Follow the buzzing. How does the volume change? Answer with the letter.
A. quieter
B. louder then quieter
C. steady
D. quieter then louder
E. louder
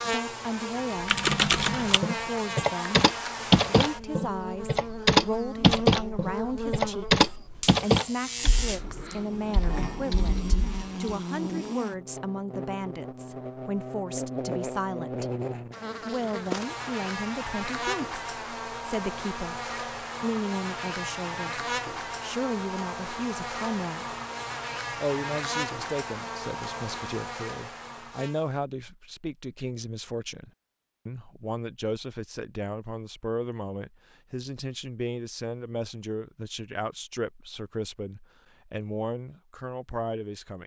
C.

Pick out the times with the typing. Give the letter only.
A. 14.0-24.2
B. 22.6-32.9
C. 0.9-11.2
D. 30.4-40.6
C.